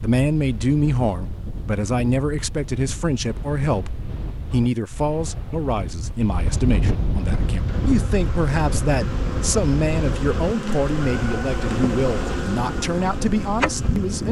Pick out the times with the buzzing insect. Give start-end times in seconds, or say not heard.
7.4-14.2.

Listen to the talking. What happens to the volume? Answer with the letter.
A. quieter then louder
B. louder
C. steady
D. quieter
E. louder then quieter
C.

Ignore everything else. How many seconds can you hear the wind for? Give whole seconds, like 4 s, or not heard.
14 s.